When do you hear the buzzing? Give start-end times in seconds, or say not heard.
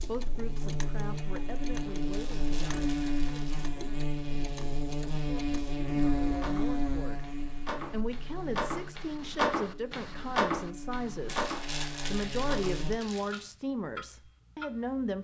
0.0-12.9.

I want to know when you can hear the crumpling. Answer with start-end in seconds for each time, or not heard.
2.1-3.8, 11.2-13.4.